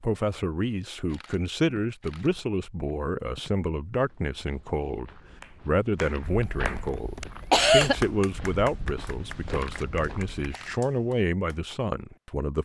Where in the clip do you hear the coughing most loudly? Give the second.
8 s.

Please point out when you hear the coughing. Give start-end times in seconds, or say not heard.
6.2-8.1.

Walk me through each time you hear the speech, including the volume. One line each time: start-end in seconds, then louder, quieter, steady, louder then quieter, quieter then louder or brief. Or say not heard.
0.0-12.6 steady.